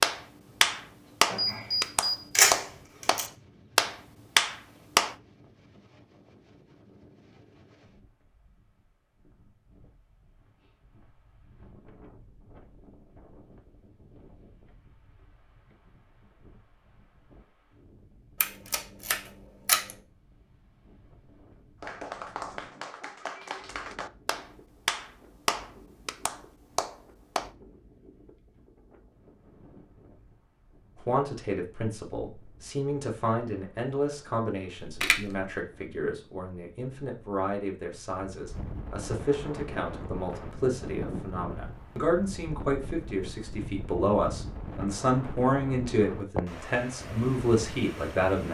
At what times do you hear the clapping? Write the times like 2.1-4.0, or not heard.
0.0-5.2, 21.8-27.5.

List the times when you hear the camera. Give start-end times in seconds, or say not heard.
1.3-3.3, 18.4-19.9, 34.8-35.4.